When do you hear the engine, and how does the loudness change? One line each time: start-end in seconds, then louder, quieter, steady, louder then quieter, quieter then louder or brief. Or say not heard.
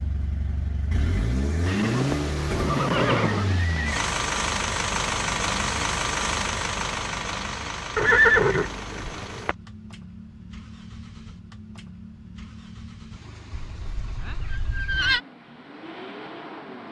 0.0-16.8 quieter.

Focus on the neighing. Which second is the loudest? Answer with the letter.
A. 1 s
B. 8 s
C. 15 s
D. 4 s
B.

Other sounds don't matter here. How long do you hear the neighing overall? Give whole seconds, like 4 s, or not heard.
6 s.